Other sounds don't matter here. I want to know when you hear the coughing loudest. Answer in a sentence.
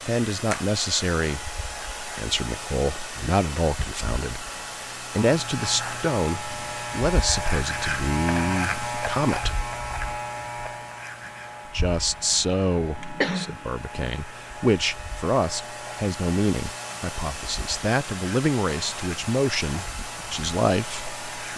The volume of the coughing peaks at 13 seconds.